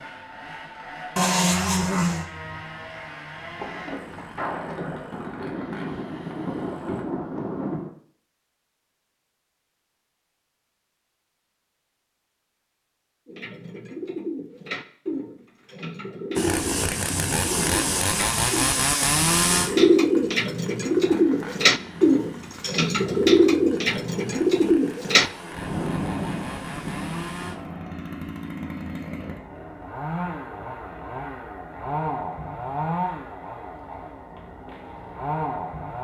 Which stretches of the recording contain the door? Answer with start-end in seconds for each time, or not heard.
not heard.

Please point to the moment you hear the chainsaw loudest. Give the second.
19 s.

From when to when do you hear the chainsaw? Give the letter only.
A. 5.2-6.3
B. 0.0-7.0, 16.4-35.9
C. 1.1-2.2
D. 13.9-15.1
B.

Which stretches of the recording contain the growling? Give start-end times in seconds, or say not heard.
1.1-2.2.